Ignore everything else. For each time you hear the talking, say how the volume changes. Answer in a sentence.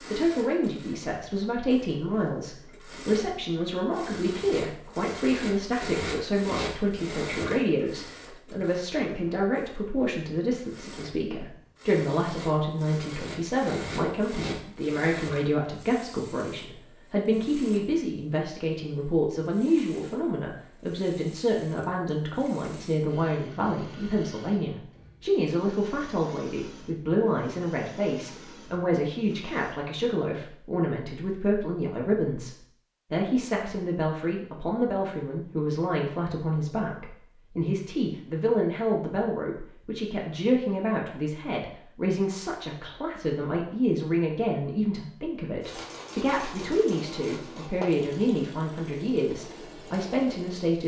You can hear the talking from 0.1 to 50.8 s, at a steady volume.